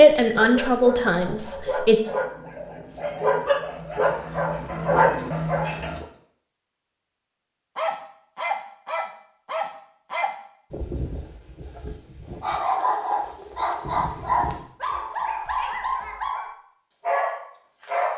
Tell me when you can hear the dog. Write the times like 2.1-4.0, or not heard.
0.0-6.0, 7.8-18.1.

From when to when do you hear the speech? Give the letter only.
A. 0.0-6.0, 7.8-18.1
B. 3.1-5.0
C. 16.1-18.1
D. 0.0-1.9
D.